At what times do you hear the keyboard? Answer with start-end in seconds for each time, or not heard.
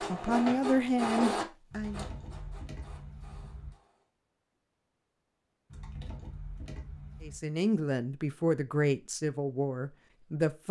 1.7-3.7, 5.7-7.4.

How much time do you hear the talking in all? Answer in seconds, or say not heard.
5 s.